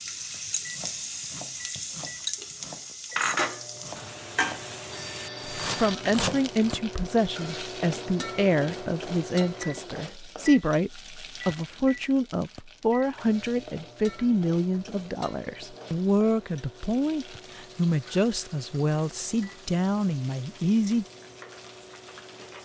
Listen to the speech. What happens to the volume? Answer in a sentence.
The loudness of the speech stays about the same.